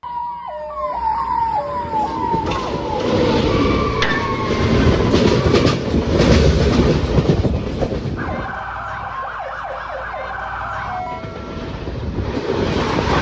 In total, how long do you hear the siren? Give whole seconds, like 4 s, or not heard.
9 s.